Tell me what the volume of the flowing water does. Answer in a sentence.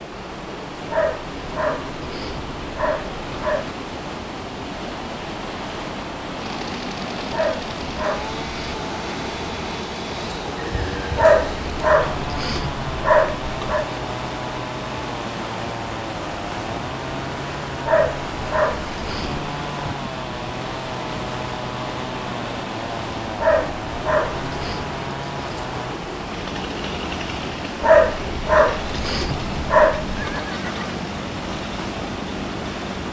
The volume of the flowing water stays about the same.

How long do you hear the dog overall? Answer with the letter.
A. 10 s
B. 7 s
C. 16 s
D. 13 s
D.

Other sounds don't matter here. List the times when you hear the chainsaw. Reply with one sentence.
The chainsaw can be heard from 6.4 to 33.0 s.